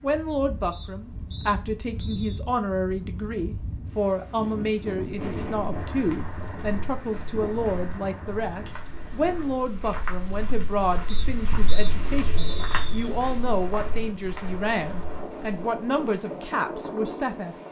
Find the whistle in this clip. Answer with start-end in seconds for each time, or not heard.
0.7-2.4, 11.1-13.1.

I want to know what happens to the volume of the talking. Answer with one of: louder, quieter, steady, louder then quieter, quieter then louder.
steady.